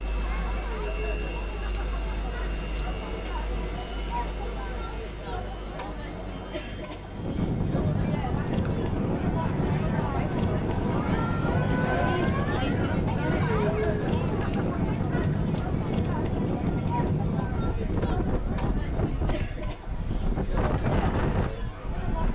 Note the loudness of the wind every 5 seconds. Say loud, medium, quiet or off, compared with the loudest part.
quiet, loud, loud, loud, loud.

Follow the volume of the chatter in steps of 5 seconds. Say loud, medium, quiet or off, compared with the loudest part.
medium, medium, loud, medium, medium.